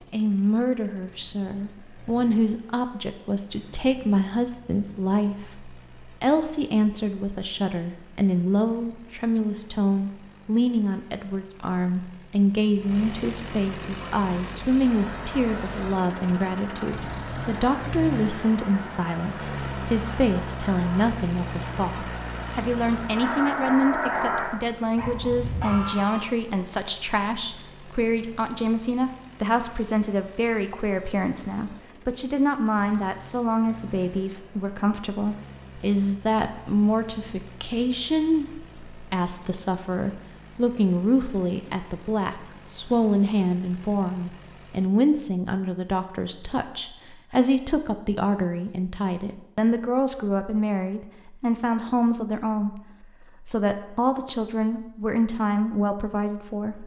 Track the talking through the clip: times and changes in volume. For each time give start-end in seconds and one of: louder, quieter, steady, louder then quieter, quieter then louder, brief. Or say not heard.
0.1-56.8 steady.